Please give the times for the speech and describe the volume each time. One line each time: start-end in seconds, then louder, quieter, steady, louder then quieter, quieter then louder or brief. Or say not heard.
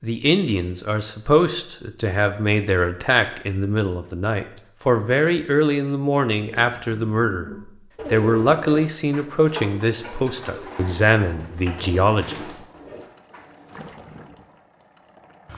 0.0-12.5 steady.